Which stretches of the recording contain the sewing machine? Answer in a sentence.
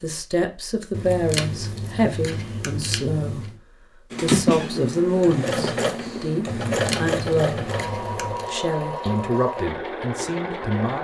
The sewing machine can be heard from 4.1 to 10.9 s.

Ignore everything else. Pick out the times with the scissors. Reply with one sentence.
You can hear the scissors from 0.9 to 3.5 s and from 6.7 to 8.5 s.